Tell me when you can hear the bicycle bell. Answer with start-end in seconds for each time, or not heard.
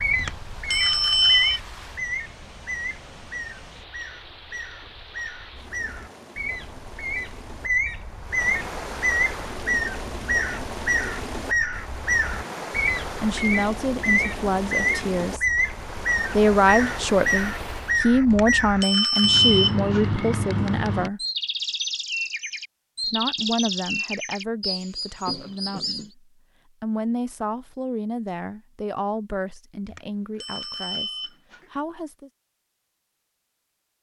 0.2-1.6, 18.3-20.1, 29.9-31.6.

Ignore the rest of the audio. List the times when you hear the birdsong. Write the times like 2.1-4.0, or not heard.
0.0-26.1.